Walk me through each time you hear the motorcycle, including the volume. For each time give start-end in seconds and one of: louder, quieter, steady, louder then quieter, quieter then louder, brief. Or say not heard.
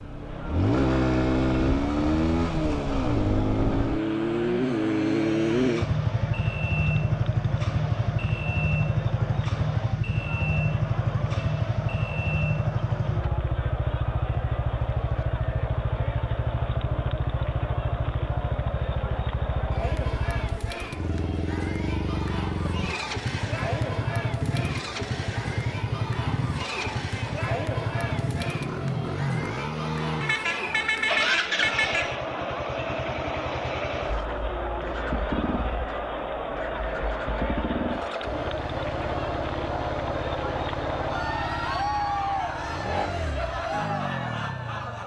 0.0-45.0 quieter.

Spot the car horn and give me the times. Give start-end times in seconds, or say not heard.
30.2-32.1.